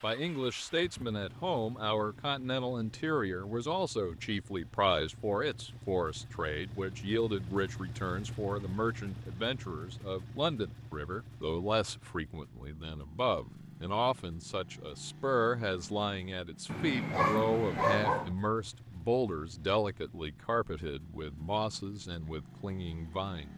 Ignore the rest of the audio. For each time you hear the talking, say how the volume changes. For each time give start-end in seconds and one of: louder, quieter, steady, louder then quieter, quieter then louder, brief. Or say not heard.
0.0-23.5 steady.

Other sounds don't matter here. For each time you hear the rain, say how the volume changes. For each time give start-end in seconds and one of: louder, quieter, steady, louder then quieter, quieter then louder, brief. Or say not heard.
not heard.